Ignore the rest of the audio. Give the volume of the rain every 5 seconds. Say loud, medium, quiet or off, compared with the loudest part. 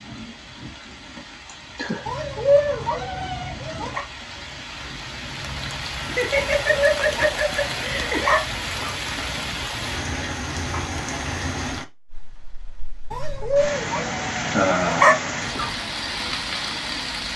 medium, loud, loud, loud.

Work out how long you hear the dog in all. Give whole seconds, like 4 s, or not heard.
7 s.